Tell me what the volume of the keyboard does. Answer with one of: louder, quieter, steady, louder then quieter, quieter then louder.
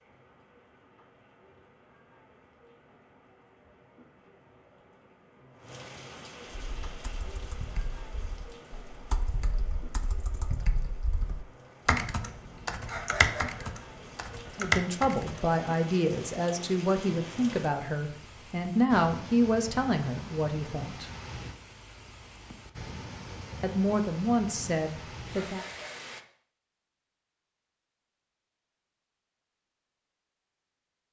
louder.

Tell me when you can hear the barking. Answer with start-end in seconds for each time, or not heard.
12.8-13.7, 25.3-26.1.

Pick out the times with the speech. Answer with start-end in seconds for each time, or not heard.
14.6-21.1, 23.6-25.6.